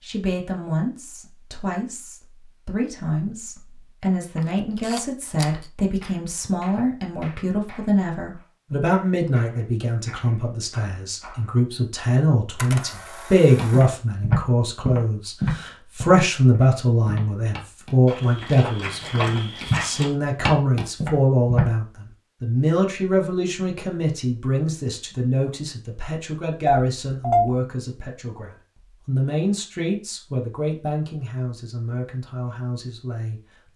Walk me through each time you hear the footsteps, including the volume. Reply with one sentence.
The footsteps can be heard from 13.6 to 21.7 s, getting quieter then louder.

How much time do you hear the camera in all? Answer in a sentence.
The camera can be heard for 3 seconds in total.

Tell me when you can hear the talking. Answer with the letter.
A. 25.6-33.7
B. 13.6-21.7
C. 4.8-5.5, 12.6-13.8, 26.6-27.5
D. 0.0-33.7
D.